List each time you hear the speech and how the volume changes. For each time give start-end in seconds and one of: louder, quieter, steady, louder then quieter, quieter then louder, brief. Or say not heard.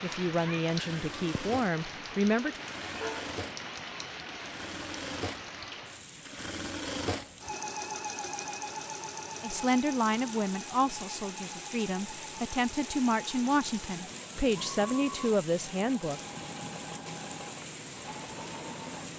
0.0-2.6 brief
9.4-16.2 quieter then louder.